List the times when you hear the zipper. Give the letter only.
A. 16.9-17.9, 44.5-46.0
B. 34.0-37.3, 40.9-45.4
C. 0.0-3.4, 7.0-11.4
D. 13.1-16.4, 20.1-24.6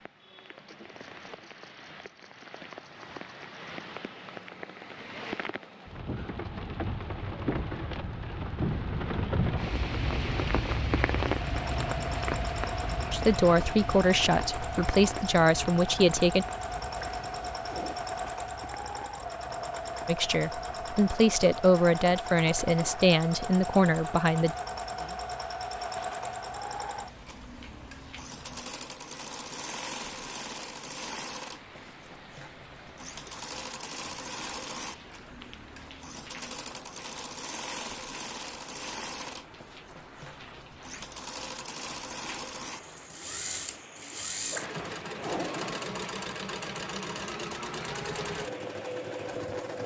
A.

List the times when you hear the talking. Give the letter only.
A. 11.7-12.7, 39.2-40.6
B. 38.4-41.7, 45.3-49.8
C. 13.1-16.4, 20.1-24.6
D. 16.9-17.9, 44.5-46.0
C.